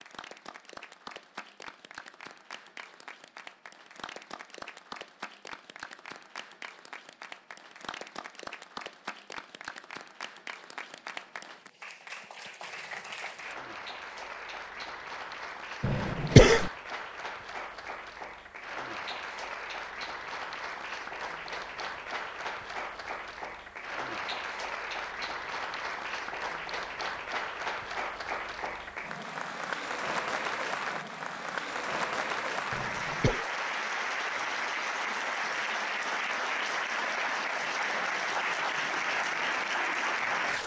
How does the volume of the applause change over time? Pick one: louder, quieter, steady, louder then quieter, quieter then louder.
louder.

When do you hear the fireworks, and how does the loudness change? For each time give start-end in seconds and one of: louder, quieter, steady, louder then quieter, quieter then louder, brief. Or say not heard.
not heard.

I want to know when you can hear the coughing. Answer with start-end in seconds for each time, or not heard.
15.8-16.7, 32.7-33.5.